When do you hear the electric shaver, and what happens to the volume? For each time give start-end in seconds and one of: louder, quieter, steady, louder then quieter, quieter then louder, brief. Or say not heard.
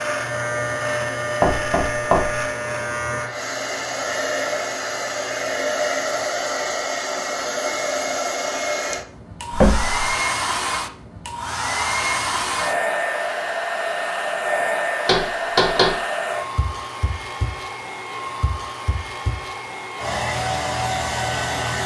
0.0-6.5 quieter.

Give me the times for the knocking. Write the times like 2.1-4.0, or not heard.
1.4-2.5, 9.5-10.0, 15.1-15.9.